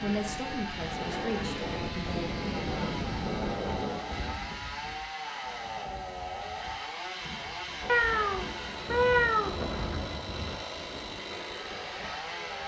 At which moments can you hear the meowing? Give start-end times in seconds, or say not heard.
7.8-9.6.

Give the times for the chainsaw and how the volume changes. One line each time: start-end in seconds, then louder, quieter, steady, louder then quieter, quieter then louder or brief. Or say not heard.
0.0-12.6 steady.